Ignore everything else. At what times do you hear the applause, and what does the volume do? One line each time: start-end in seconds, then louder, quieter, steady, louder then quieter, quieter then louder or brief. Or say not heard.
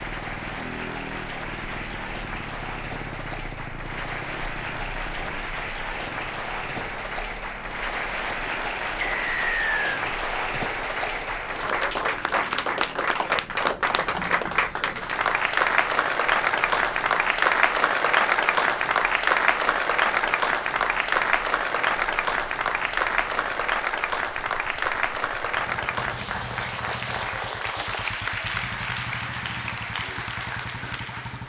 0.0-31.4 louder then quieter.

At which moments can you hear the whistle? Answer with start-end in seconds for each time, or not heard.
9.0-9.9.